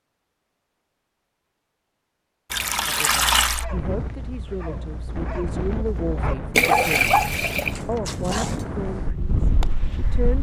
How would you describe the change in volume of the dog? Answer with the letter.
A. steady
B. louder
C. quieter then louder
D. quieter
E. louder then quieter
E.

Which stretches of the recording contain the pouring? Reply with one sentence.
The pouring can be heard from 2.5 to 3.6 s and from 6.5 to 7.8 s.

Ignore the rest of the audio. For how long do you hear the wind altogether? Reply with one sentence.
The wind can be heard for 7 seconds in total.